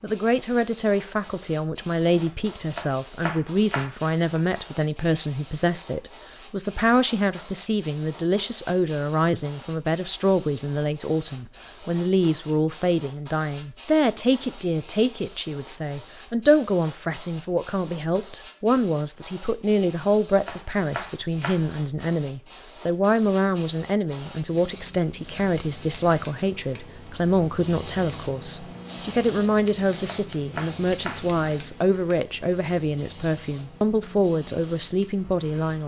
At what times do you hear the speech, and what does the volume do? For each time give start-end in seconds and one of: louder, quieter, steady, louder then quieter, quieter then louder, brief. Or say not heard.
0.0-35.8 steady.